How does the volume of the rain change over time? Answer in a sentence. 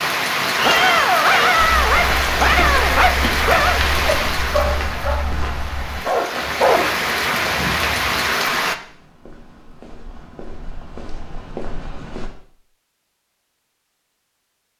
The loudness of the rain goes down, then up.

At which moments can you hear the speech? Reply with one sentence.
The speech can't be heard in this clip.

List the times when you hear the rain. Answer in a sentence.
The rain can be heard from 0.0 to 8.8 s.